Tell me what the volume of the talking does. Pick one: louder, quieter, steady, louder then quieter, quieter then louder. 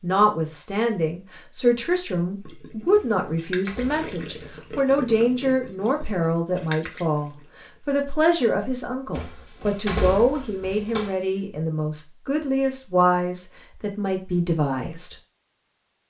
steady.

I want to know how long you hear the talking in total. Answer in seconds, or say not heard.
15 s.